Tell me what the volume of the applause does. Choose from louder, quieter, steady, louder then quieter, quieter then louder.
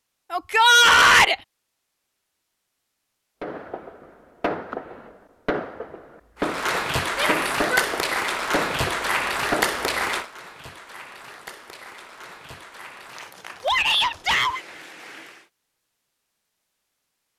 quieter.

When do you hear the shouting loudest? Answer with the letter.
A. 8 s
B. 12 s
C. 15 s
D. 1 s
D.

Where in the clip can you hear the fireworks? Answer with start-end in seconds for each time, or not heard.
3.4-10.1.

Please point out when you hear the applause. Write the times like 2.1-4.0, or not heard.
6.4-15.5.